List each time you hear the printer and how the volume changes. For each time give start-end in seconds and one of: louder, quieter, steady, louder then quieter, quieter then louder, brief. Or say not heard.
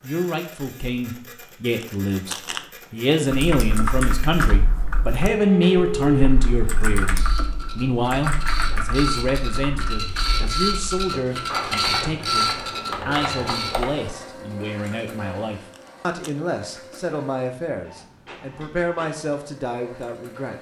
0.0-20.5 louder then quieter.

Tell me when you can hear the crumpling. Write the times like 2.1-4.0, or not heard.
1.8-2.7, 15.7-16.4.